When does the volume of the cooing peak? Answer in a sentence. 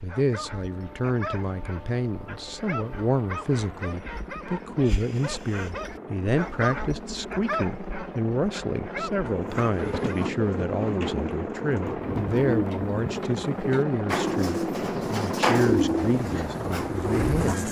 The volume of the cooing peaks at 16 seconds.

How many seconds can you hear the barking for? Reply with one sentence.
The barking can be heard for 10 seconds in total.